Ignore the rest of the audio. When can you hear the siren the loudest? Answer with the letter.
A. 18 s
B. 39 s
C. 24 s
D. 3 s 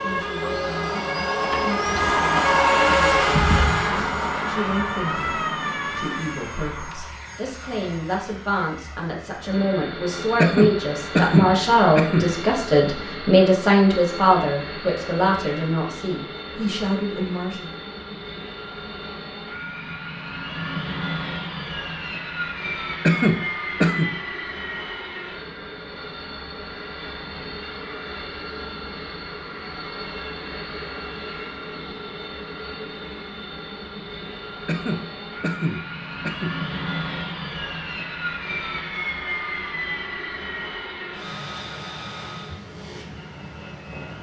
D.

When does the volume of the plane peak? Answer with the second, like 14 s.
3 s.